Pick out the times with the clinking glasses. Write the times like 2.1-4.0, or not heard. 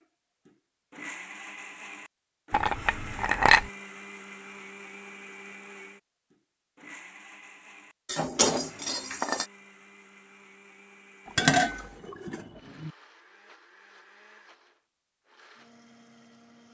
2.5-3.7, 8.1-9.4, 11.3-12.9.